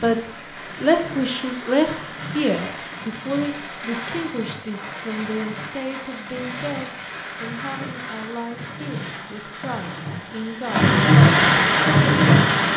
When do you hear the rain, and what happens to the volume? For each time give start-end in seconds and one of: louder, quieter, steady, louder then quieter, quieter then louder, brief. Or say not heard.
0.0-12.7 louder.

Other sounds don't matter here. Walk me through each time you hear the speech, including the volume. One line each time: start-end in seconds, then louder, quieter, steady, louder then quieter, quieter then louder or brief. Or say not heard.
0.0-10.9 quieter.